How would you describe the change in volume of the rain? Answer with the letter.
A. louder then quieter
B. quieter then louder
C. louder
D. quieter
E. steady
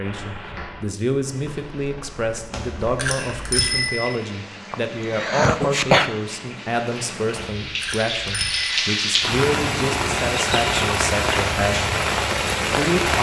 C.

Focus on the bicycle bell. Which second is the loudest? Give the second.
4 s.